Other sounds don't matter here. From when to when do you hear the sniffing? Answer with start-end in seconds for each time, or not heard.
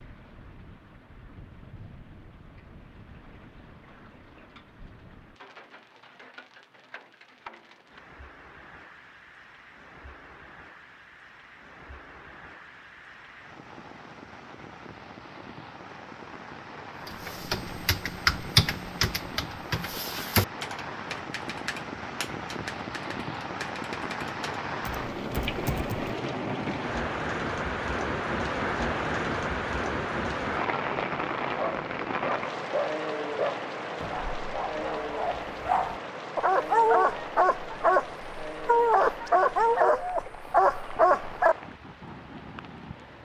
not heard.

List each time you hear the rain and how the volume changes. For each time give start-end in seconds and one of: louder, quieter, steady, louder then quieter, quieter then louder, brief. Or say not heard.
0.0-43.1 louder then quieter.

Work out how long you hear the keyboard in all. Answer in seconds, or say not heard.
9 s.